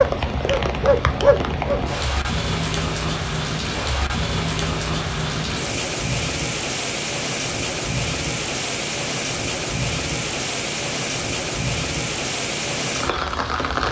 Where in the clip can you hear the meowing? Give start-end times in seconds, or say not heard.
not heard.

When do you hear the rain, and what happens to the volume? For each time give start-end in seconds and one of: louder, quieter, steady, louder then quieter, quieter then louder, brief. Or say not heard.
0.0-13.8 steady.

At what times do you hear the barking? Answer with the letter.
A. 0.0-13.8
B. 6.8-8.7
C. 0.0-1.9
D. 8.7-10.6
C.